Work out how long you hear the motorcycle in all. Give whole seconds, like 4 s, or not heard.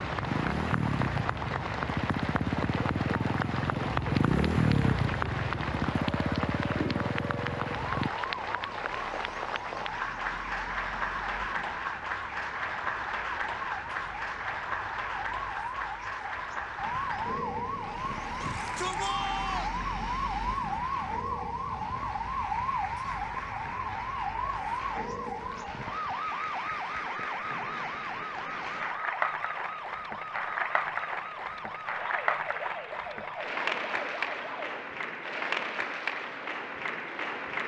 8 s.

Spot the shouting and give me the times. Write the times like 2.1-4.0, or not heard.
18.4-19.8.